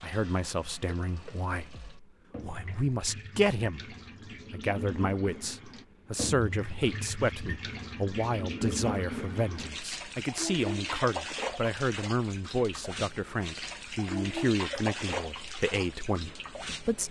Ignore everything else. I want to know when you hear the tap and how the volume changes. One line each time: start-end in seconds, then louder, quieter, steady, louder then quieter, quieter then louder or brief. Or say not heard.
0.0-17.0 louder.